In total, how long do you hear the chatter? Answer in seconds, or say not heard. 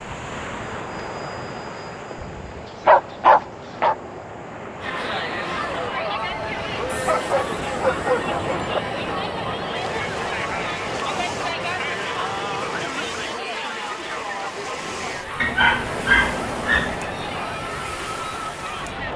14 s.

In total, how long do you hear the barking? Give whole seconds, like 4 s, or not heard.
5 s.